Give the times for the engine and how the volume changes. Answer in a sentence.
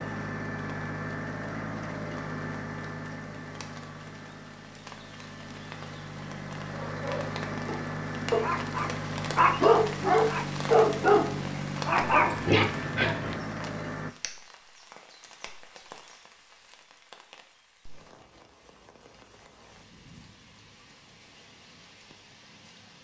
The engine can be heard from 0.0 to 14.2 s, getting quieter then louder.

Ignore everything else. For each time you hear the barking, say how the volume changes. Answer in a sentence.
The barking can be heard from 6.7 to 13.4 s, getting louder.